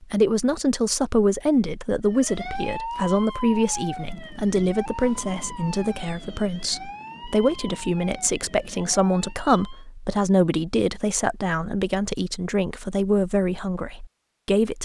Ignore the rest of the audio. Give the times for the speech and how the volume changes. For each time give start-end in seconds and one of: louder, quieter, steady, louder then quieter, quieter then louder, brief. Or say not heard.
0.0-14.8 steady.